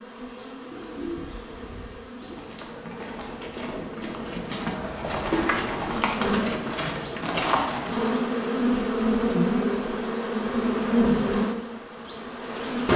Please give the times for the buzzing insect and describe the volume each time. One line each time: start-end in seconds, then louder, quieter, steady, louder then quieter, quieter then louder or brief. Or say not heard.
0.0-12.9 louder.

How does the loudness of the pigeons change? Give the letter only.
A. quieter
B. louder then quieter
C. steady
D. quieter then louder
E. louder
E.